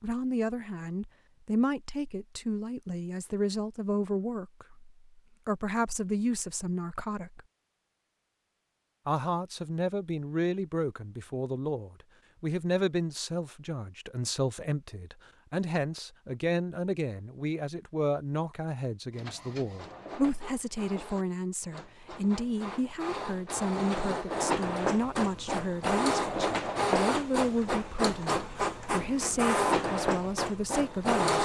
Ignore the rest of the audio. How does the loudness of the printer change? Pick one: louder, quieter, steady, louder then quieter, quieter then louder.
louder.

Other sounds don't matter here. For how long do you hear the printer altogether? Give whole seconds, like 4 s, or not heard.
12 s.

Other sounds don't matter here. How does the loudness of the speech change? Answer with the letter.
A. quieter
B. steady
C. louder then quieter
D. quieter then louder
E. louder
B.